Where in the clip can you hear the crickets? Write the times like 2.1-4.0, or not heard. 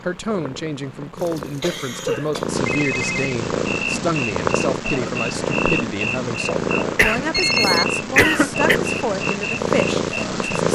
3.6-10.7.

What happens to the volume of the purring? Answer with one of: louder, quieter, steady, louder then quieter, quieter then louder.
louder.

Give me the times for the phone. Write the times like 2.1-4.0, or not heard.
2.6-3.4, 7.3-7.8.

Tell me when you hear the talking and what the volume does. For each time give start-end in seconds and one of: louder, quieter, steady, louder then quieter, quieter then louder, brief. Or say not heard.
0.0-10.7 steady.